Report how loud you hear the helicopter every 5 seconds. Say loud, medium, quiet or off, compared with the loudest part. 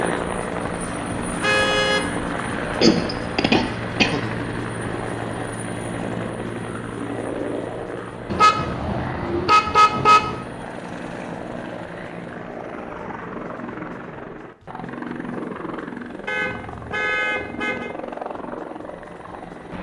loud, loud, medium, medium.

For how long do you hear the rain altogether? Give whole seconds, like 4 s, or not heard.
not heard.